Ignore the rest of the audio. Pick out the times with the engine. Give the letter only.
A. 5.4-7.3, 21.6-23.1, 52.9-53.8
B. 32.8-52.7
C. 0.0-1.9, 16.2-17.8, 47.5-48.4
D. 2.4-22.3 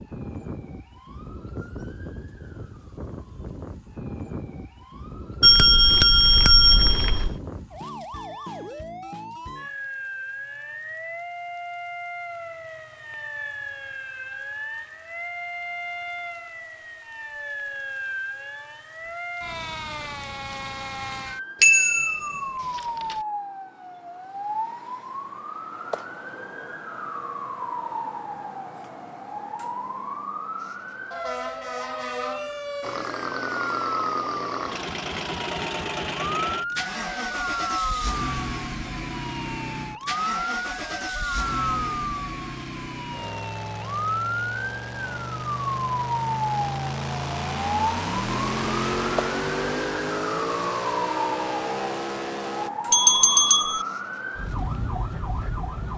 B.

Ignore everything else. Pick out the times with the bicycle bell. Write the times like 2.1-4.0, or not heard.
5.4-7.3, 21.6-23.1, 52.9-53.8.